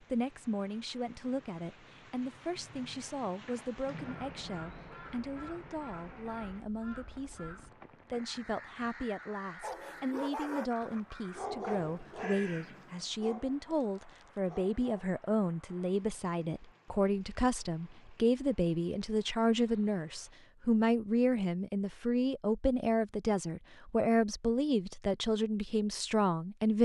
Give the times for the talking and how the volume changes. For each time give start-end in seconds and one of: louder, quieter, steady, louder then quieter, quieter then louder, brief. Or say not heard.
0.1-26.7 louder.